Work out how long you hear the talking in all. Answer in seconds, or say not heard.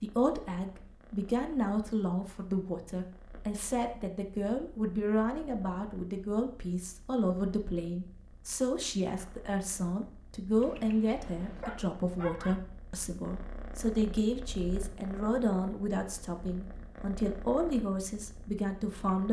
19 s.